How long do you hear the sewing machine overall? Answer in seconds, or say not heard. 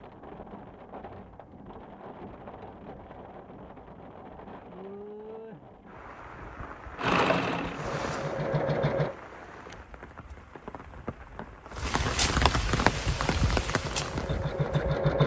5 s.